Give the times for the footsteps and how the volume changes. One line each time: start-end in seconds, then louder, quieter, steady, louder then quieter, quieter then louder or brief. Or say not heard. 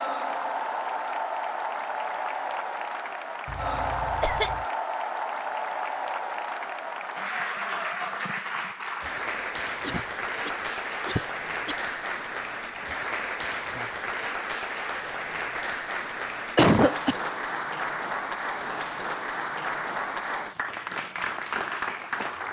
not heard.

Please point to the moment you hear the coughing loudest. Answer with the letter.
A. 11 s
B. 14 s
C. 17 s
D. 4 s
C.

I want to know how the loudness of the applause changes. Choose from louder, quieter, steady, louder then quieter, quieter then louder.
steady.